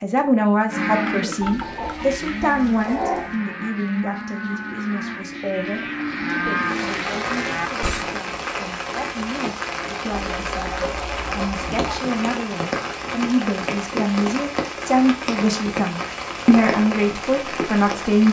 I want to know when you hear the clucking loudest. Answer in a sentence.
The volume of the clucking peaks at 3 seconds.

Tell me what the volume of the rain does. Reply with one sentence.
The loudness of the rain stays about the same.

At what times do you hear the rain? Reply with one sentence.
The rain can be heard from 6.5 to 18.2 s.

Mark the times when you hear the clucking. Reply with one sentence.
You can hear the clucking from 1.4 to 3.4 s and from 10.1 to 12.0 s.